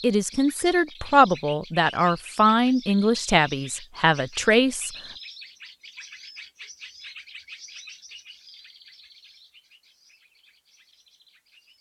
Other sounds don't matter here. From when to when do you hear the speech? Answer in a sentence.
The speech can be heard from 0.0 to 4.9 s.